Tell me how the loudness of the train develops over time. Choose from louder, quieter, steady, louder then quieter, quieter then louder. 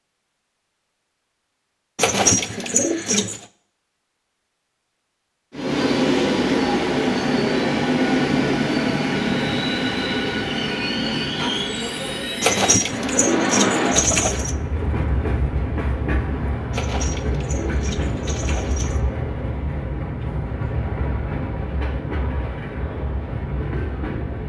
quieter.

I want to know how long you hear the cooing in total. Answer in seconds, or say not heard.
6 s.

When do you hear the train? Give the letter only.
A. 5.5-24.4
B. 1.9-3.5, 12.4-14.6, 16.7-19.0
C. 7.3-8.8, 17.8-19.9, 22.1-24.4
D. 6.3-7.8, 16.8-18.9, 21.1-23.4
A.